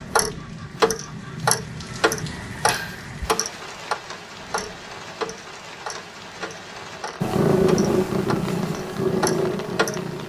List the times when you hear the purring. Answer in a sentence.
You can hear the purring from 7.2 to 10.2 s.